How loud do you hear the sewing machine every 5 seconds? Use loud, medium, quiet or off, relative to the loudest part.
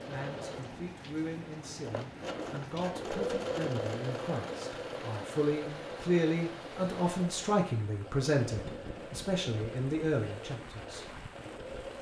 loud, medium, medium.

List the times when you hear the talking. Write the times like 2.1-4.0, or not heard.
0.1-11.1.